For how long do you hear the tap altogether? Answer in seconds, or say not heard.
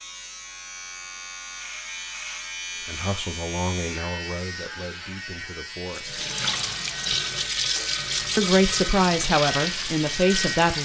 5 s.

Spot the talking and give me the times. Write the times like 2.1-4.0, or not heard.
2.9-6.2, 8.3-10.8.